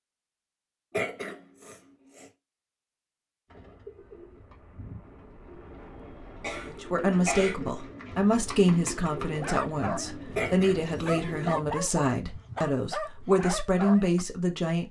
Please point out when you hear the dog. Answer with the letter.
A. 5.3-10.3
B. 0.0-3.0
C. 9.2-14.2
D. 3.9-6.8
C.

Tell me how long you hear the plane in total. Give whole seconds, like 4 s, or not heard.
3 s.